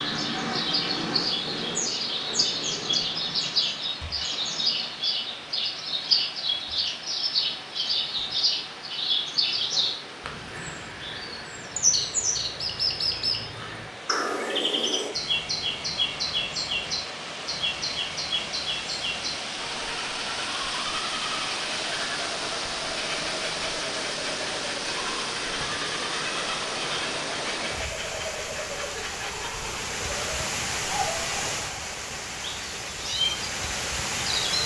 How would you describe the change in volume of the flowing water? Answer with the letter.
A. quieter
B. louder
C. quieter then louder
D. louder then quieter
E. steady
B.